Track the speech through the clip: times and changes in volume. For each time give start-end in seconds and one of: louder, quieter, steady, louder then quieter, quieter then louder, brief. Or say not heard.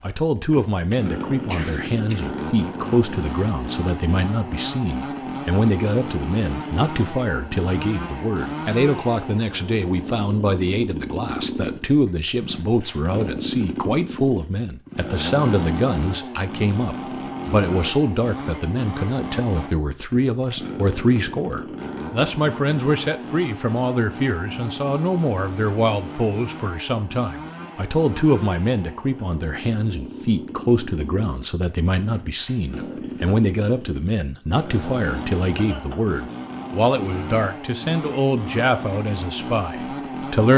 0.0-40.5 steady.